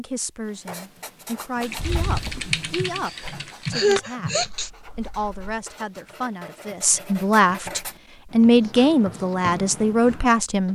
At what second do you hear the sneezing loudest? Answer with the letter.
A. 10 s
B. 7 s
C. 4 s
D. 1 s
C.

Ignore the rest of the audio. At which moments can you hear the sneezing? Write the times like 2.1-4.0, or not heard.
2.4-4.7.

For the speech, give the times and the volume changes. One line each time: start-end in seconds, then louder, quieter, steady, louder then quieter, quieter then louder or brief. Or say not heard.
0.0-10.7 louder.